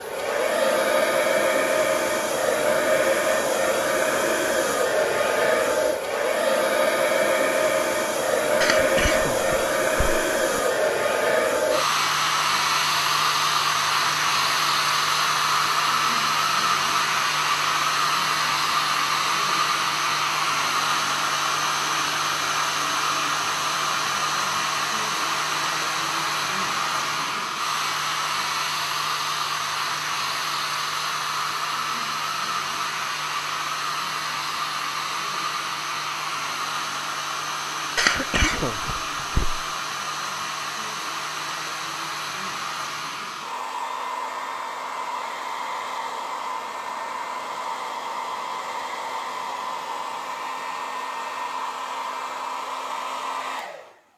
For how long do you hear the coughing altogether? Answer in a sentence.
The coughing can be heard for 4 seconds in total.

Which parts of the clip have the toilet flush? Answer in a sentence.
You can't hear the toilet flush here.